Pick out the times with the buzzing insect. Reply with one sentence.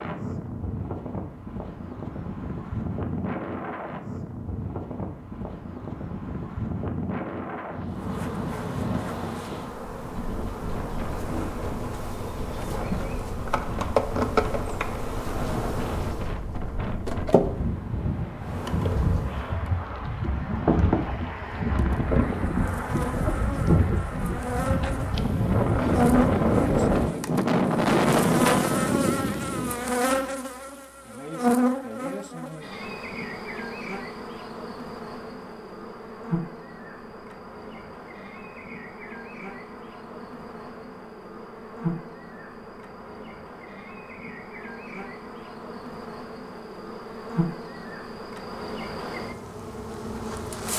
You can hear the buzzing insect from 7.8 to 50.7 s.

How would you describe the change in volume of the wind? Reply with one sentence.
The volume of the wind goes up.